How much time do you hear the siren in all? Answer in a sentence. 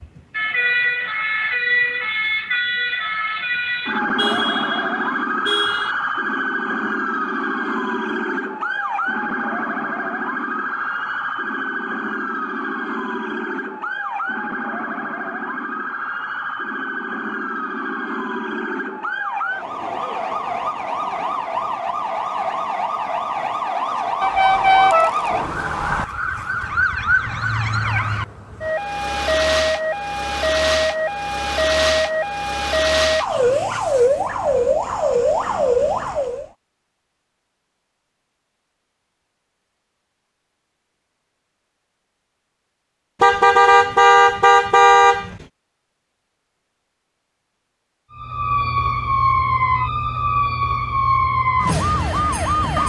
You can hear the siren for 41 seconds altogether.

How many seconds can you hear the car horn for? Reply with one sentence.
The car horn can be heard for 6 seconds in total.